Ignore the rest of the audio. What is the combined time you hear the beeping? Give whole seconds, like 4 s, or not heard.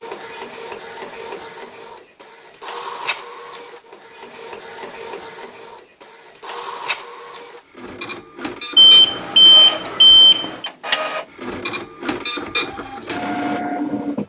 2 s.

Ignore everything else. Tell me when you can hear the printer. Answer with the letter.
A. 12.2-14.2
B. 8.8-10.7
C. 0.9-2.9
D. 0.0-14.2
D.